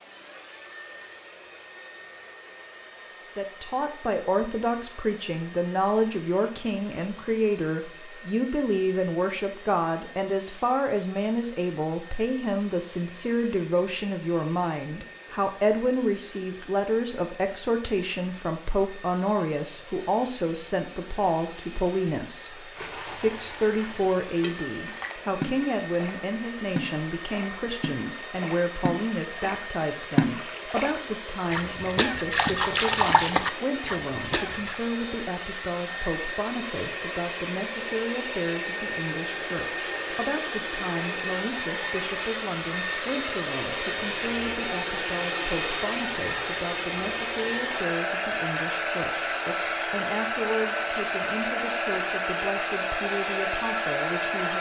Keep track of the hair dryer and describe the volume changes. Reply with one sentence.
The volume of the hair dryer goes up.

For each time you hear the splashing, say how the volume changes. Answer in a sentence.
You can hear the splashing from 22.8 to 34.8 s, getting louder.